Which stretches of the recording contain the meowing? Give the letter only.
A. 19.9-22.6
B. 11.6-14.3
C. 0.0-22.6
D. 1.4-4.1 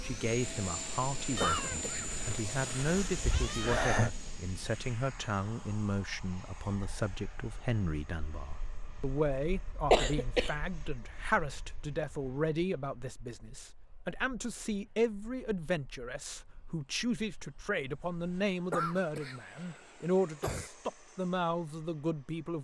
D.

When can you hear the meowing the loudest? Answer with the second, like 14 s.
4 s.